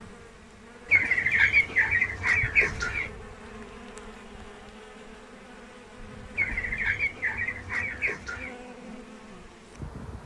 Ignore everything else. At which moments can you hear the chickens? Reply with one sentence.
The chickens can be heard from 0.9 to 3.1 s and from 6.3 to 8.6 s.